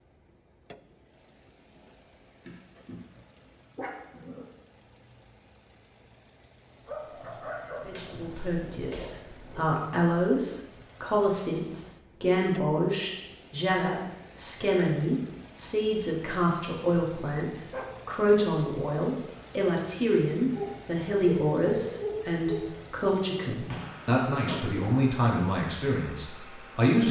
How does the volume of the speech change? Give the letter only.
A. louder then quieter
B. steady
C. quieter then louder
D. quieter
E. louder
B.